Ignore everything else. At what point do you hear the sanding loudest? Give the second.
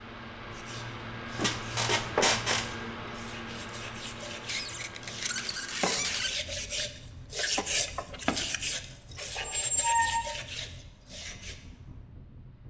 8 s.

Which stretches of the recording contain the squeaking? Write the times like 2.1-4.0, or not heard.
1.4-2.7, 4.5-6.3, 9.3-10.3.